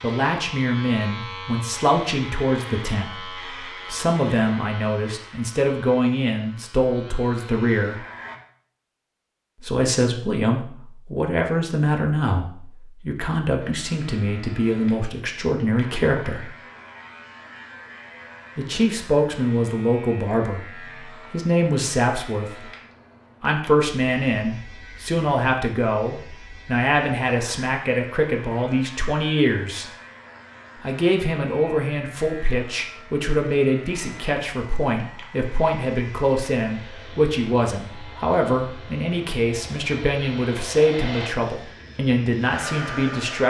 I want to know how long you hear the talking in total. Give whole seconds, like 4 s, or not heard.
38 s.